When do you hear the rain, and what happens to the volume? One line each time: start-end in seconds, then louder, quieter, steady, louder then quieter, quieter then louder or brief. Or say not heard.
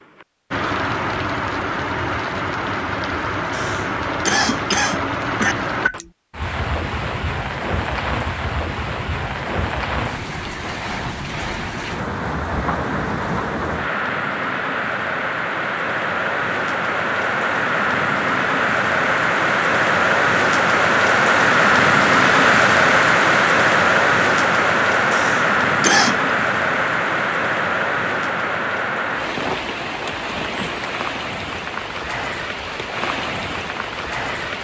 0.0-34.5 louder then quieter.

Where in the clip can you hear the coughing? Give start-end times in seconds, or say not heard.
3.5-5.5, 25.1-26.2.